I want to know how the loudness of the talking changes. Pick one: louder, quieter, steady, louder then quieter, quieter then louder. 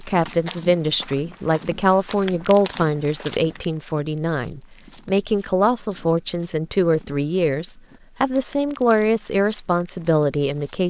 steady.